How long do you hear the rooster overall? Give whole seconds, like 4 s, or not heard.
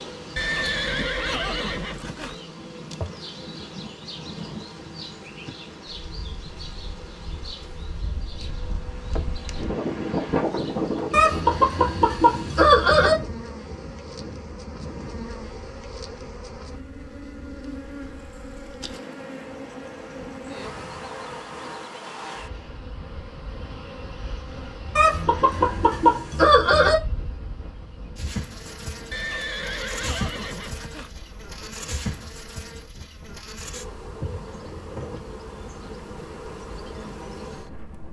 4 s.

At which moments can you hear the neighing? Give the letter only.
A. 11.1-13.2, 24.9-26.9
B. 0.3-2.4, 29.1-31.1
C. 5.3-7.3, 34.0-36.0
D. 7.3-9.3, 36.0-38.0
B.